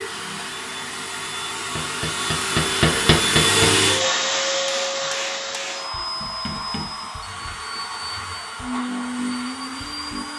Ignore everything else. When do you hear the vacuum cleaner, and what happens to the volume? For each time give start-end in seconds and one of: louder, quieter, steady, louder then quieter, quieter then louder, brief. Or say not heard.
0.0-10.3 louder then quieter.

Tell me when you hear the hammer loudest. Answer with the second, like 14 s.
3 s.